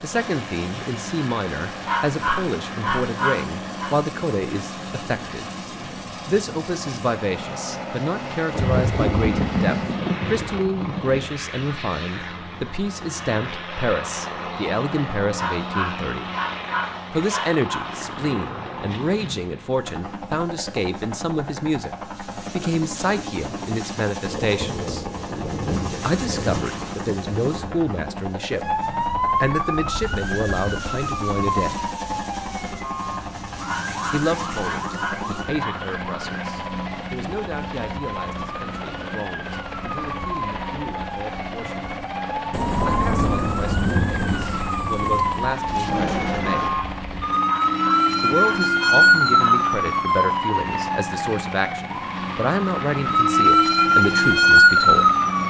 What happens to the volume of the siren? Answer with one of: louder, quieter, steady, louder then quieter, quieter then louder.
quieter then louder.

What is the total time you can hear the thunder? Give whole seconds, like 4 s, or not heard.
11 s.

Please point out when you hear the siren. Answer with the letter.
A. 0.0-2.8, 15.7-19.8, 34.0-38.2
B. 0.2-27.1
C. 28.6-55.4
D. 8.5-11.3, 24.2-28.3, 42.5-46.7
C.